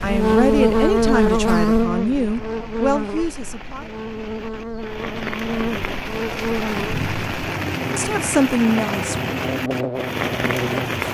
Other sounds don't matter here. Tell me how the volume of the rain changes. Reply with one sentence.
The volume of the rain goes up.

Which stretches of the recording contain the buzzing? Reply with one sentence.
The buzzing can be heard from 0.0 to 11.0 s.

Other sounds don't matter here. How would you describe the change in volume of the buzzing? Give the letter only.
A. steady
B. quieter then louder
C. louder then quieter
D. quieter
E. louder
D.